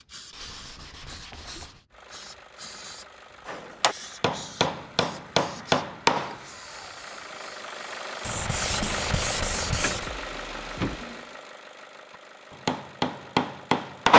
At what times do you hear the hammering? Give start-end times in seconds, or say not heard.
3.5-6.4, 12.7-14.1.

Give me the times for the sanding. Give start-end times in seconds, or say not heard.
0.3-1.9, 8.2-10.1.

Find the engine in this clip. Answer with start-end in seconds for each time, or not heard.
1.9-14.1.